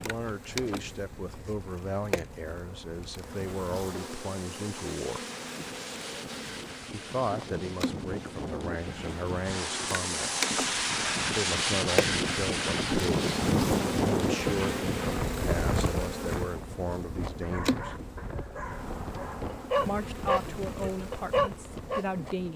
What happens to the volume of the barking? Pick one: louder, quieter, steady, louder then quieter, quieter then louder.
louder.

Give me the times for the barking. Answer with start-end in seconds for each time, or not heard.
17.4-22.1.